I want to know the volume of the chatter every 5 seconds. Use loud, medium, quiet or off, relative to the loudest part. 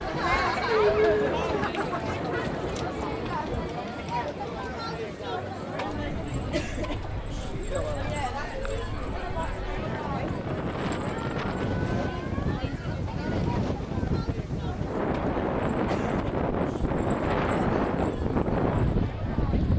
loud, medium, medium, quiet.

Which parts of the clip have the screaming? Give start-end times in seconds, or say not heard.
not heard.